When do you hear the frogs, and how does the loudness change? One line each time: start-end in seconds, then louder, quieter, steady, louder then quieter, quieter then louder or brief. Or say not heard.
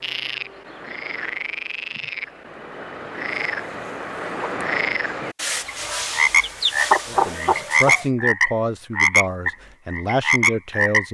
0.0-11.0 louder.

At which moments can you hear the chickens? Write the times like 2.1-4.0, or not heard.
5.3-8.1.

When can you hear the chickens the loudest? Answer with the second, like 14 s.
7 s.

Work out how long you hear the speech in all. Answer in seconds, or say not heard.
4 s.